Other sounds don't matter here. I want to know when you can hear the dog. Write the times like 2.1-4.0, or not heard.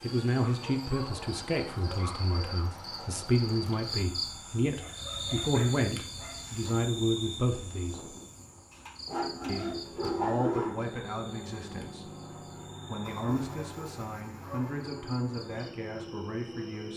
0.4-2.5, 4.8-6.7, 8.7-10.8, 13.1-14.8.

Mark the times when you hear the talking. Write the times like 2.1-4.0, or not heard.
0.0-8.2, 9.4-12.2, 12.8-16.9.